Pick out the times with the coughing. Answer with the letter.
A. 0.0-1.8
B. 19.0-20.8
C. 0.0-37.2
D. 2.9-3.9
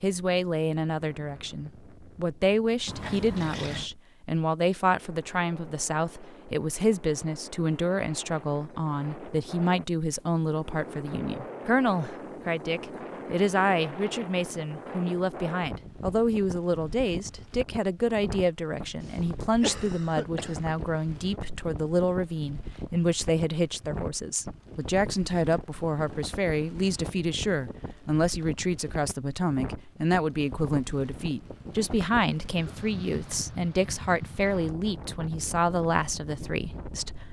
B.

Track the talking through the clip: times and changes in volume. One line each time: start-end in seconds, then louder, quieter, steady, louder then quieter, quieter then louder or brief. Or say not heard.
0.0-37.2 steady.